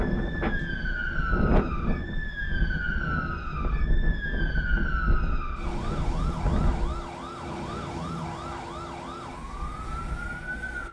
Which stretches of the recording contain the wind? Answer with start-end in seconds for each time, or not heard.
0.0-7.0.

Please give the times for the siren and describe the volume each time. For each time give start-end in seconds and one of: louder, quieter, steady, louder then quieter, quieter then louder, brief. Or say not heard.
0.0-10.8 steady.